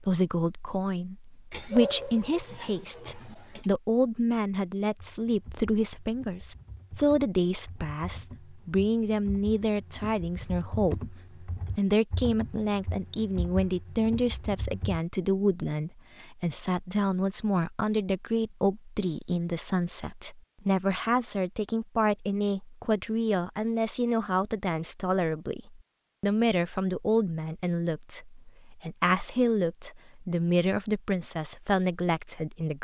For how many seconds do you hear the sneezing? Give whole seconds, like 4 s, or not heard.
2 s.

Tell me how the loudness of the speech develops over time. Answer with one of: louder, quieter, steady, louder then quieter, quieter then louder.
steady.